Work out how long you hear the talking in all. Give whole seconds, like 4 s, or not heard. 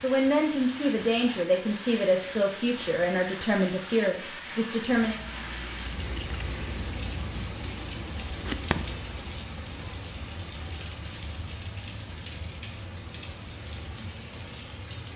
5 s.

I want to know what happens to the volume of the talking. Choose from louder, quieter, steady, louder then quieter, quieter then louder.
steady.